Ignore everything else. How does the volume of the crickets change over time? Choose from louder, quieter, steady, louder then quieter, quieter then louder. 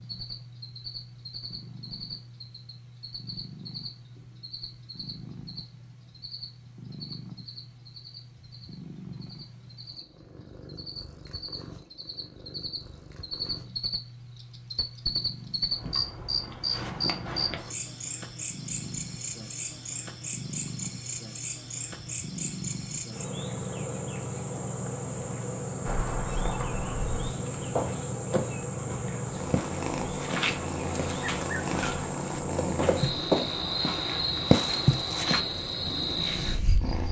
louder.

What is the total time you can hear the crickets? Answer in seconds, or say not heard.
37 s.